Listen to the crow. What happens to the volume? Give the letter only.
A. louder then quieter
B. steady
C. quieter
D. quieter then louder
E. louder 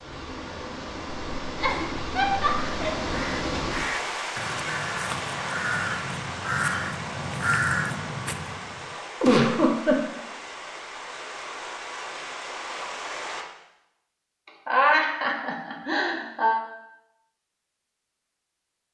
E.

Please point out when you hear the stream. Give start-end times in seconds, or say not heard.
0.0-13.4.